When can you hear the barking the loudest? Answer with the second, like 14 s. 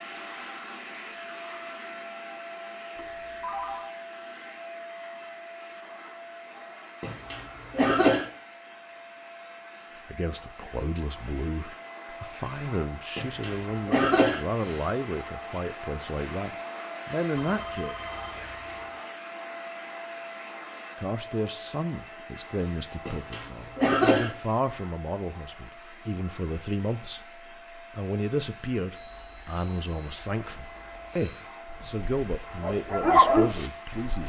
33 s.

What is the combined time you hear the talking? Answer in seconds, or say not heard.
21 s.